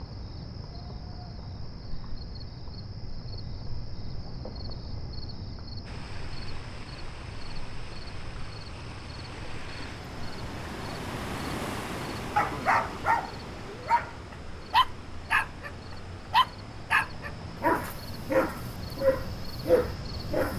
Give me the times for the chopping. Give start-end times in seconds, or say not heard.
not heard.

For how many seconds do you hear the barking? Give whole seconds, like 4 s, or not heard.
7 s.